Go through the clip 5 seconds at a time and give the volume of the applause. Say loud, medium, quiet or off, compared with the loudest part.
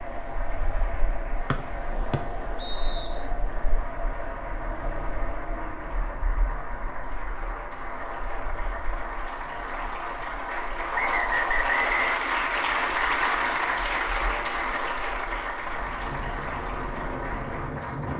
quiet, medium, loud, medium.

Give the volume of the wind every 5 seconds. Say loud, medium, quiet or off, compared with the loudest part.
loud, medium, medium, loud.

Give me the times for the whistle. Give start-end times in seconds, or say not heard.
1.5-3.1, 10.9-12.2.